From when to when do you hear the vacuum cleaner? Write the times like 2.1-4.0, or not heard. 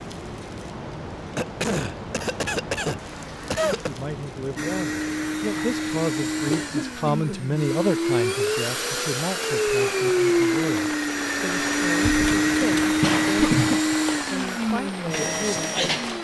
4.5-16.1.